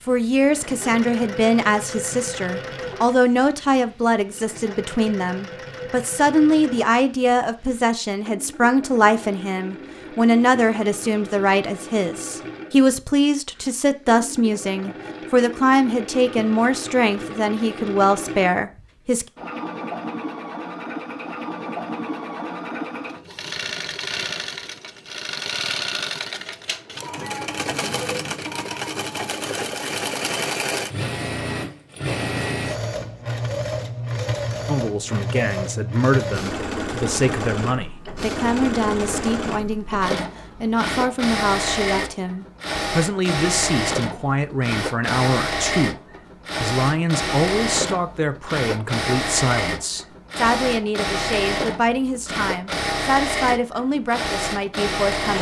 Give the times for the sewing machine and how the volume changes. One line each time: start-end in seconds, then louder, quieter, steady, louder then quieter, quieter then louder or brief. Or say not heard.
0.0-55.3 louder.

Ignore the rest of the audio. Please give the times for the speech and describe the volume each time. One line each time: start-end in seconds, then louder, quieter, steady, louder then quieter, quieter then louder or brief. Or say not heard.
0.1-19.2 steady
34.6-55.3 steady.